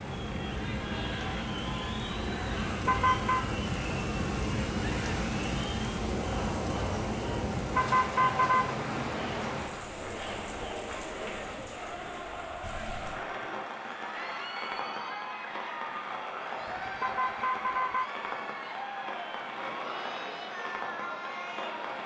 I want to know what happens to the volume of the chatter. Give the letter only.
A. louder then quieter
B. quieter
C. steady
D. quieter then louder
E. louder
C.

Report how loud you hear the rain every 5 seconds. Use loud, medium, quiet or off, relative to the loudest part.
loud, loud, medium, medium, medium.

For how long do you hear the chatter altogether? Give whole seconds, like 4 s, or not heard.
22 s.